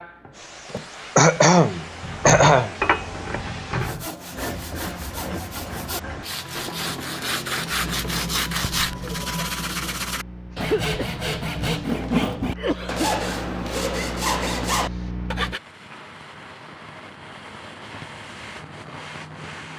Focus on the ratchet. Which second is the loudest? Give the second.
3 s.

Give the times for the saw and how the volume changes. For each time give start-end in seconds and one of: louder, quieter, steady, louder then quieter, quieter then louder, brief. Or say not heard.
3.8-15.6 louder.